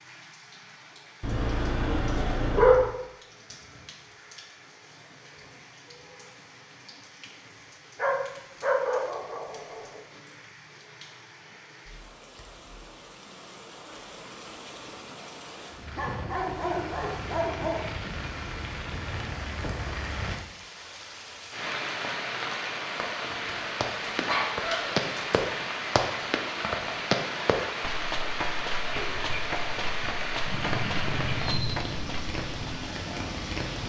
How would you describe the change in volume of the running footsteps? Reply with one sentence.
The loudness of the running footsteps goes down.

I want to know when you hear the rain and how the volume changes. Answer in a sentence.
You can hear the rain from 0.0 to 33.8 s, getting louder.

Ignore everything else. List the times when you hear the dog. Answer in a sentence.
You can hear the dog from 1.2 to 2.9 s, from 8.0 to 10.0 s, from 15.9 to 17.8 s, from 24.1 to 25.4 s and from 28.9 to 31.8 s.